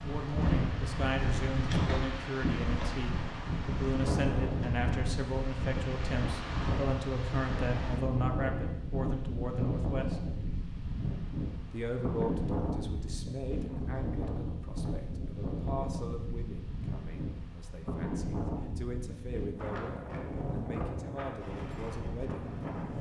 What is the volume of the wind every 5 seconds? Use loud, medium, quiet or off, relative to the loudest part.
loud, loud, loud, medium, medium.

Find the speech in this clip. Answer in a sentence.
You can hear the speech from 0.0 to 10.2 s and from 11.7 to 22.4 s.